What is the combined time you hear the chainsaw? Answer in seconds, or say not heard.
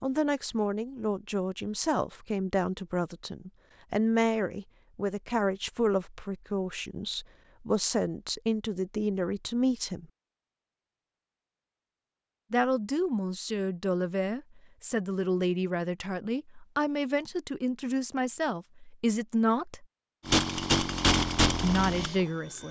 2 s.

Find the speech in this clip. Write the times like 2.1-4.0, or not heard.
0.0-10.1, 12.5-19.9, 21.6-22.6.